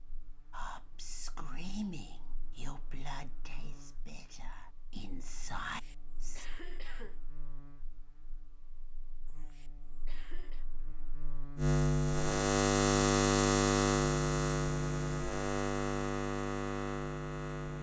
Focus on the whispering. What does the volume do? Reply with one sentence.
The volume of the whispering goes down, then up.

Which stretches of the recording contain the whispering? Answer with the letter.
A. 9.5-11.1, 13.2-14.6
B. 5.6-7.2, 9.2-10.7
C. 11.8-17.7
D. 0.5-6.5
D.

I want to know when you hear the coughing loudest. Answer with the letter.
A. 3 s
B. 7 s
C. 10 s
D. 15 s
B.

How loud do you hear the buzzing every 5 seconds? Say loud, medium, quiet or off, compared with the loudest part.
quiet, quiet, loud, medium.